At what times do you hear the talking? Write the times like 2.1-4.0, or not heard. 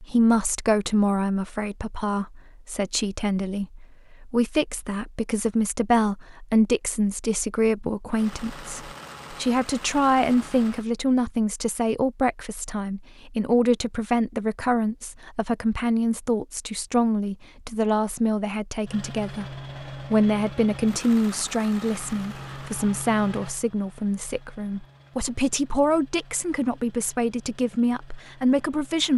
0.0-29.1.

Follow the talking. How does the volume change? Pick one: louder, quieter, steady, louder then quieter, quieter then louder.
steady.